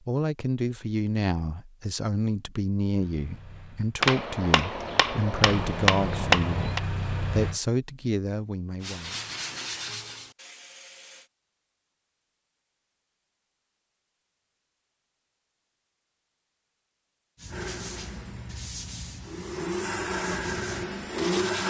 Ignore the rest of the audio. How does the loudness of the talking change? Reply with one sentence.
The loudness of the talking stays about the same.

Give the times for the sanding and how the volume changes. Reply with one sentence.
The sanding can be heard briefly from 8.8 to 11.3 s; and from 17.4 to 21.6 s, getting quieter then louder.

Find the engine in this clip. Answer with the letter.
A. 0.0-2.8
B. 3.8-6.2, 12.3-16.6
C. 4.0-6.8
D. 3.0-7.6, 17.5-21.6
D.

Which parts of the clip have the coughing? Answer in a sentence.
The coughing can't be heard in this clip.